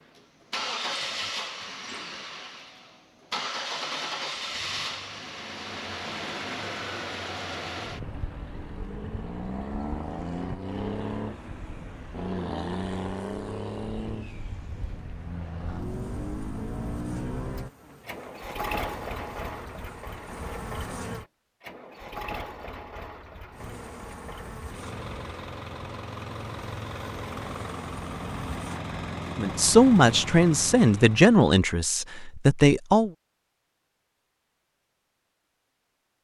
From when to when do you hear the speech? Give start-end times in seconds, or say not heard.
29.4-33.1.